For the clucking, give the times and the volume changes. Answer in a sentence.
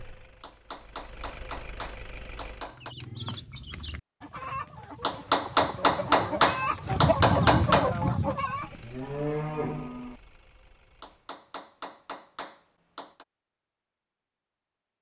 You can hear the clucking from 2.7 to 8.8 s, getting louder.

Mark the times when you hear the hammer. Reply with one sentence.
The hammer can be heard from 0.4 to 3.0 s, from 5.0 to 7.9 s and from 11.0 to 13.2 s.